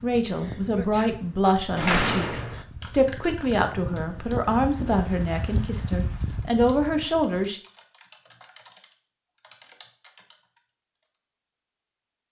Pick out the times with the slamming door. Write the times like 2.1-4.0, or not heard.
1.8-2.6.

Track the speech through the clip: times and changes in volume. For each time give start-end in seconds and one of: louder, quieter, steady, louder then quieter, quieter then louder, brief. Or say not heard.
0.0-7.6 steady.